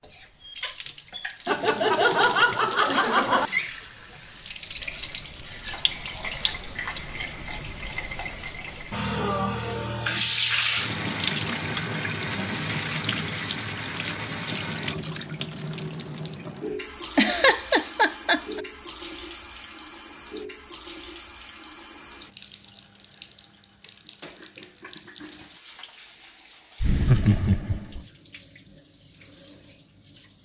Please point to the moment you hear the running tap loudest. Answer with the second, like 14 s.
11 s.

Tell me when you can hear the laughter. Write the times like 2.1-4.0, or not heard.
1.4-3.5, 17.1-18.6, 26.8-28.0.